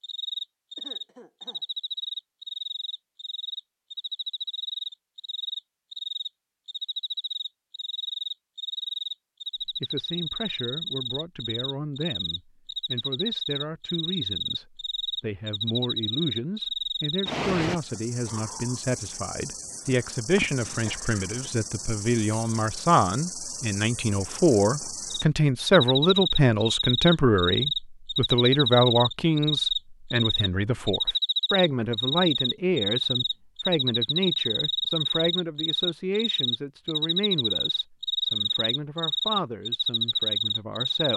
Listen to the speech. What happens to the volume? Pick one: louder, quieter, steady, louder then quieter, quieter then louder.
louder then quieter.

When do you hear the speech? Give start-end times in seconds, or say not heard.
9.7-41.1.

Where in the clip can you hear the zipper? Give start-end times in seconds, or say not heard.
not heard.